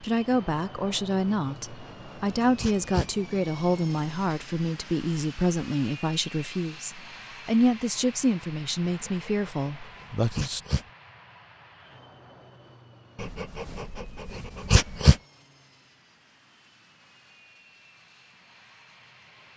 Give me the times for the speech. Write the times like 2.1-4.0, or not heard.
0.0-10.6.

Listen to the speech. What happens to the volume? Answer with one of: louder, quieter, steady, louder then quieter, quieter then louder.
steady.